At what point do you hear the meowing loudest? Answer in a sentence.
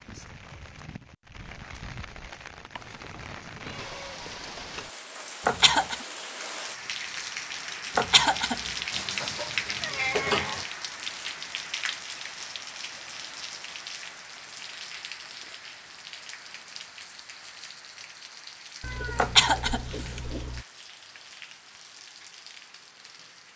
The volume of the meowing peaks at 10 seconds.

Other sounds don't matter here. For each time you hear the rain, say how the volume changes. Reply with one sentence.
You can hear the rain from 0.0 to 23.5 s, getting louder then quieter.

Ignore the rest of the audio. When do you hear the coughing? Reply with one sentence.
You can hear the coughing from 5.5 to 6.0 s, from 8.0 to 8.6 s and from 19.1 to 20.2 s.